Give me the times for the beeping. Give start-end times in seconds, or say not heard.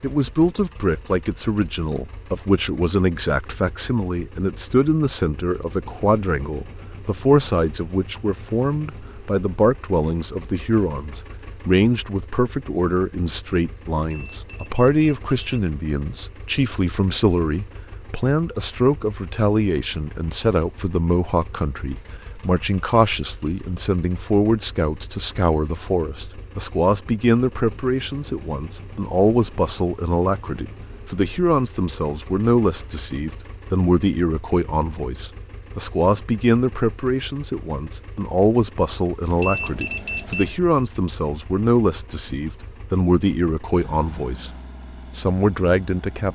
13.9-15.6, 39.2-40.6.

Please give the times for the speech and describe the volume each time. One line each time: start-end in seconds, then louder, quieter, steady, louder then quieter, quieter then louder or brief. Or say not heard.
0.0-44.5 steady
45.1-46.3 brief.